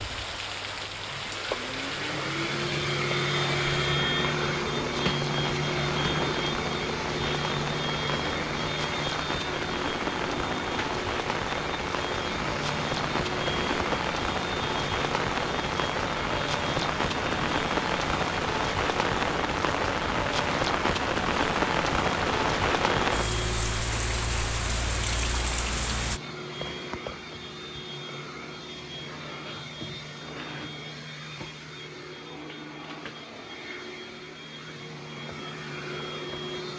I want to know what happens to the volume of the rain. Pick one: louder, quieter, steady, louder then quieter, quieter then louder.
louder.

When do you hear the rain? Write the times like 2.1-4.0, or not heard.
0.0-26.2.